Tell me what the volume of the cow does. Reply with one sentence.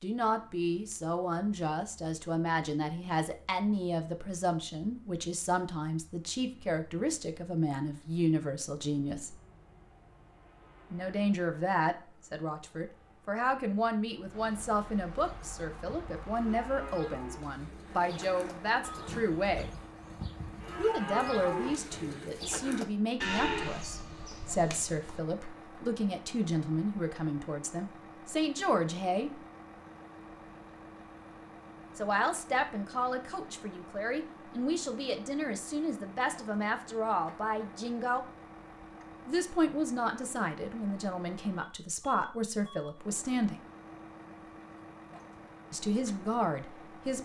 The volume of the cow goes up.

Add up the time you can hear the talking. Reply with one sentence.
You can hear the talking for 39 seconds altogether.